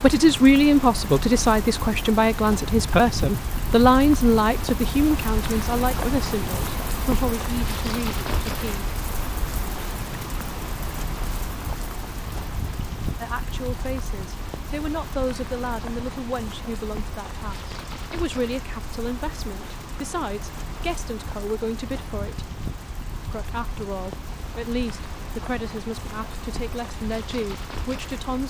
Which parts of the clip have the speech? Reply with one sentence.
You can hear the speech from 0.0 to 8.8 s, from 13.2 to 22.5 s and from 23.3 to 28.4 s.